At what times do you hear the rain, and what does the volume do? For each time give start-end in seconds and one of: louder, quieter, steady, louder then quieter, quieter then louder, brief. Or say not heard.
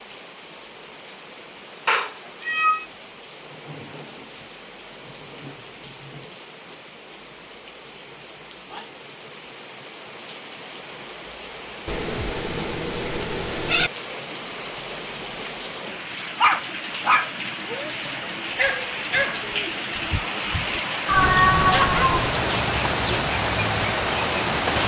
0.0-24.8 louder.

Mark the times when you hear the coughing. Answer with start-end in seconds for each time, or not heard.
not heard.